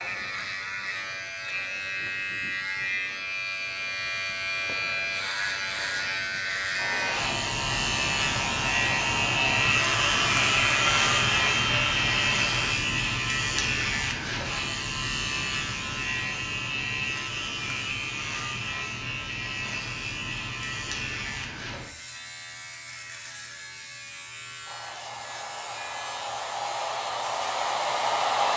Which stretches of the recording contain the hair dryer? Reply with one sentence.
You can hear the hair dryer from 6.8 to 12.8 s and from 24.6 to 28.5 s.